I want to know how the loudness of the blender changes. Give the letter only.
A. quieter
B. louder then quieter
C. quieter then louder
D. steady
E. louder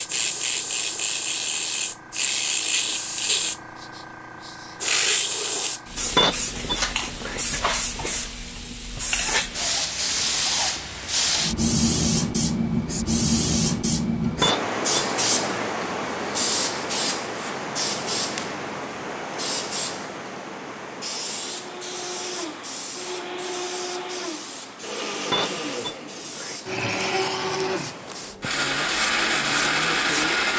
E.